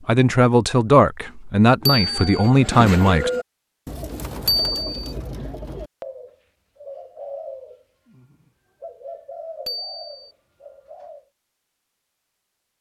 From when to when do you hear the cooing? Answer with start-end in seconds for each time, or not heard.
1.8-11.2.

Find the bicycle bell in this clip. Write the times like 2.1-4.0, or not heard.
1.9-2.5, 4.5-5.2, 9.7-10.3.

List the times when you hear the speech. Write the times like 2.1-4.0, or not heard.
0.1-3.3.